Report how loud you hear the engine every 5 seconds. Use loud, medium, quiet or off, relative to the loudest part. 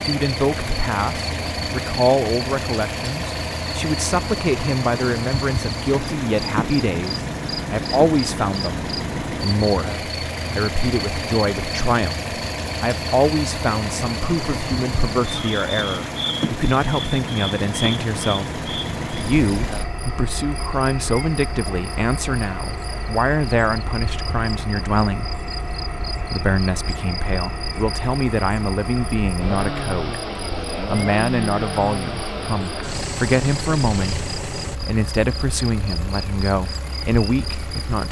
loud, loud, loud, loud, medium, loud, loud, medium.